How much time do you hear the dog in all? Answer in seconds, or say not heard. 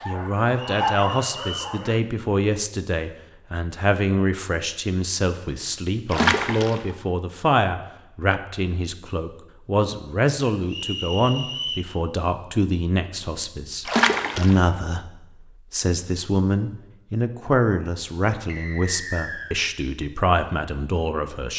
2 s.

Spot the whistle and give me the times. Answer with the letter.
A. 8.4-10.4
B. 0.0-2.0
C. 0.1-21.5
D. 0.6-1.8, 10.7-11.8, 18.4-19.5
D.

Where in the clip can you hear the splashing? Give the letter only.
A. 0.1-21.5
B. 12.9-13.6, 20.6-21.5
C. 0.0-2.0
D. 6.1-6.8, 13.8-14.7
D.